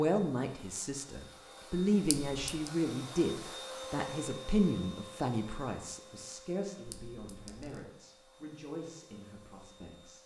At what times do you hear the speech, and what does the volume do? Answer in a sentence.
You can hear the speech from 0.0 to 10.2 s, getting quieter.